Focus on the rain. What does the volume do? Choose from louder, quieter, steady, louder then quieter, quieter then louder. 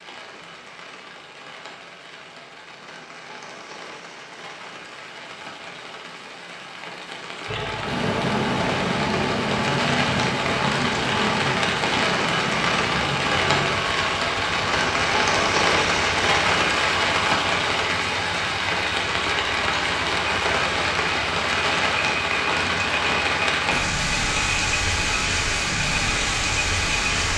louder.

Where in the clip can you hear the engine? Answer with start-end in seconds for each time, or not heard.
7.5-27.3.